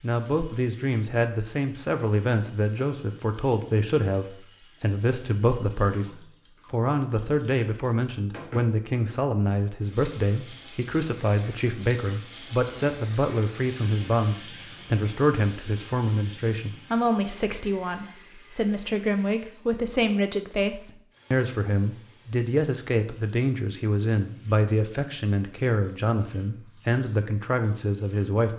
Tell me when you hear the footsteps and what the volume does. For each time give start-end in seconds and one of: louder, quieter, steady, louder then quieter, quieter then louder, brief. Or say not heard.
not heard.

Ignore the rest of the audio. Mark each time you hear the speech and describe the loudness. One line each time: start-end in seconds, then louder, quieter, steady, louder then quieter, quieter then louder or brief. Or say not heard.
0.0-28.5 steady.